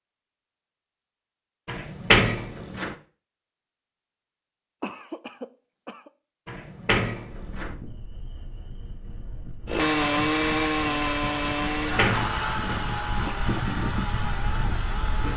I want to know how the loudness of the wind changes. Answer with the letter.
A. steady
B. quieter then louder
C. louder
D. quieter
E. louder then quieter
C.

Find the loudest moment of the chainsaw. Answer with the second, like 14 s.
10 s.